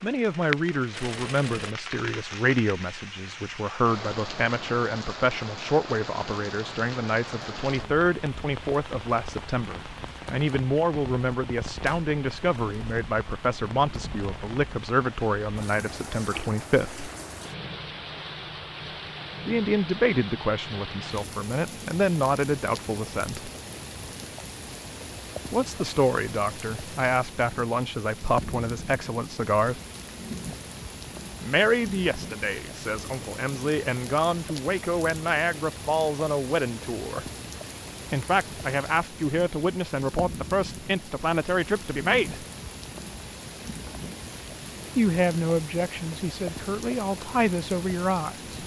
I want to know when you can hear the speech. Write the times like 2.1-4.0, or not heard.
0.0-17.1, 19.4-23.5, 25.5-29.8, 31.4-37.2, 38.1-42.5, 45.0-48.4.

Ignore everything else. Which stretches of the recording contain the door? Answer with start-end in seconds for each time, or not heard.
not heard.